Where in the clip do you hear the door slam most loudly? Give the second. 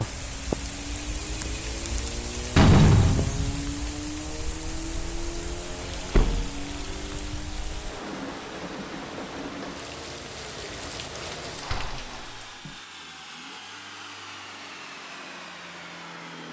3 s.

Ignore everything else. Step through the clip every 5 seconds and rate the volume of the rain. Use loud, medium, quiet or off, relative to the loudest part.
loud, loud, loud, off.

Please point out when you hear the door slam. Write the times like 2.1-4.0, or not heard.
2.5-3.8, 6.1-6.6, 11.4-12.8.